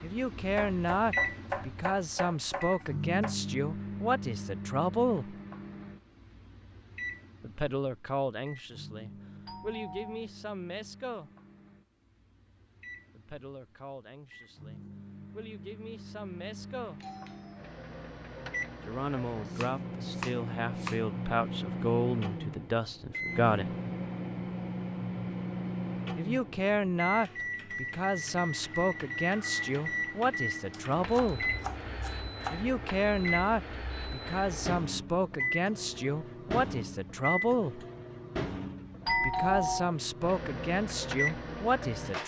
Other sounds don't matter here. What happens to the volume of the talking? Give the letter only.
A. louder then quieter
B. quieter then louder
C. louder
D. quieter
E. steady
B.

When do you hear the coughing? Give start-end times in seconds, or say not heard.
not heard.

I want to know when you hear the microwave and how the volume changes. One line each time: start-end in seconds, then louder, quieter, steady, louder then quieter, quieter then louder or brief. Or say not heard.
0.0-42.2 quieter then louder.